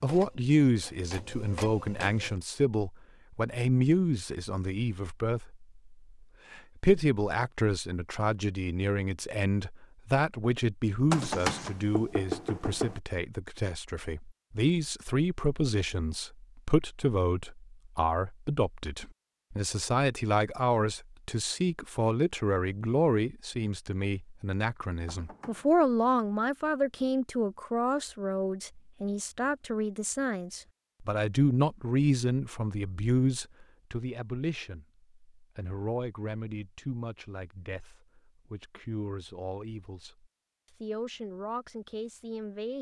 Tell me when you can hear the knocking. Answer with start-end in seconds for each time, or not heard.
11.1-13.0, 25.1-25.8.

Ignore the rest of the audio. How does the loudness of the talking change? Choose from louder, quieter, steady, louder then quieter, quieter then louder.
quieter.